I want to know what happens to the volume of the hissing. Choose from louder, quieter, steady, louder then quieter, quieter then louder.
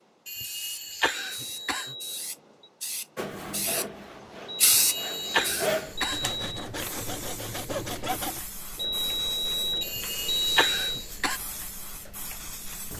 louder then quieter.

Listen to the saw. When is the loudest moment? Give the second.
6 s.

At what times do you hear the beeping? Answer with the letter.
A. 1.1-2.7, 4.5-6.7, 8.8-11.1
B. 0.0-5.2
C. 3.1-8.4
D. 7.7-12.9
A.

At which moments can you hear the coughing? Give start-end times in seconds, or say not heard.
0.2-1.9, 4.8-6.3, 9.8-11.4.